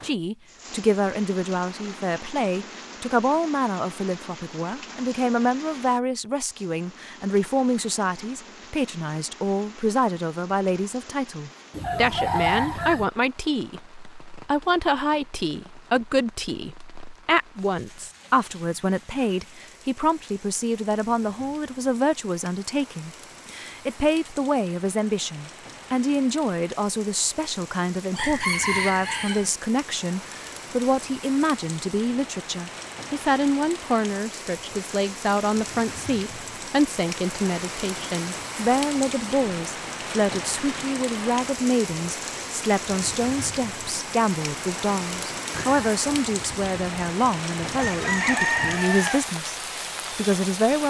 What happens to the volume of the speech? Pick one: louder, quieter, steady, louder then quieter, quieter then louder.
steady.